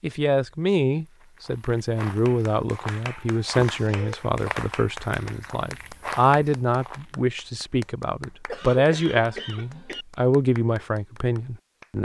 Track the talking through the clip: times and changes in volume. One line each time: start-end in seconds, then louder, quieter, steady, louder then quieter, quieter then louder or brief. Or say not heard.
0.0-12.0 steady.